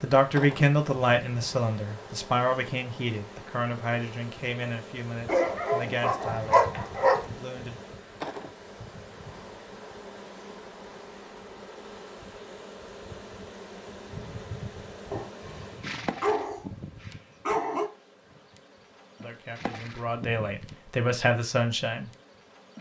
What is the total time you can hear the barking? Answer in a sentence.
The barking can be heard for 4 seconds in total.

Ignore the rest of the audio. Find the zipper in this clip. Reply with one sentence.
The zipper can't be heard in this clip.